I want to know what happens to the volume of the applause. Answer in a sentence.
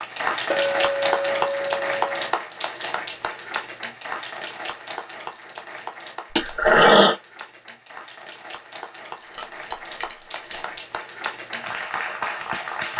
The volume of the applause goes down, then up.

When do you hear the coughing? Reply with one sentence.
You can hear the coughing from 6.3 to 7.2 s.